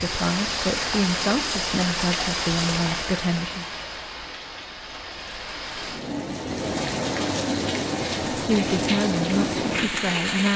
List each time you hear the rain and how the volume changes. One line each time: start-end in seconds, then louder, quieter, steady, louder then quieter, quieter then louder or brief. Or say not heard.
0.0-10.5 quieter then louder.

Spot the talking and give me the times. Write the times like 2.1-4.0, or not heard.
0.0-3.6, 8.4-10.5.